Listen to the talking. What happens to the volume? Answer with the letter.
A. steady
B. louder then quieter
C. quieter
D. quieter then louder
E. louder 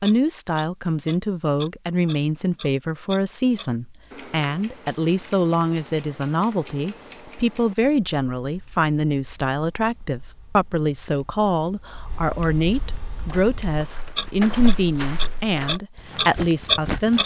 A.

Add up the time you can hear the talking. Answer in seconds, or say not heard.
17 s.